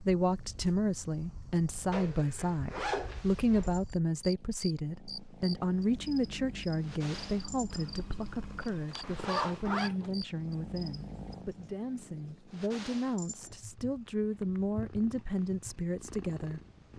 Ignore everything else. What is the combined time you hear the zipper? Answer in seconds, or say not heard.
3 s.